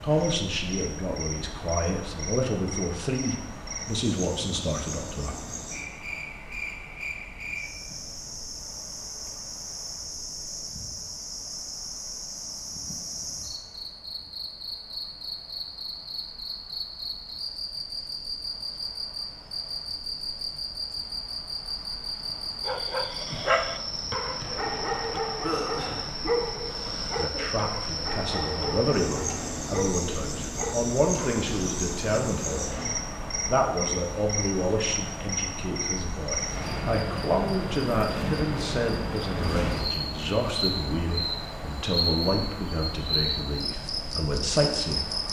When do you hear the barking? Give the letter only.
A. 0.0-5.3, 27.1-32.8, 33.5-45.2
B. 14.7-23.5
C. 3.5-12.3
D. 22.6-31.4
D.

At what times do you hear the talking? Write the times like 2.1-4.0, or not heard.
0.0-5.3, 27.1-32.8, 33.5-45.2.